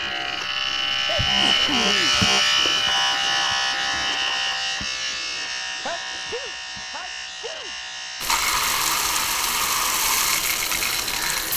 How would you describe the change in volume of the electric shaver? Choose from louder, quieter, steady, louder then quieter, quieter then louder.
quieter.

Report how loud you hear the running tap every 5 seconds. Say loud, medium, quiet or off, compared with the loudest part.
off, loud, loud.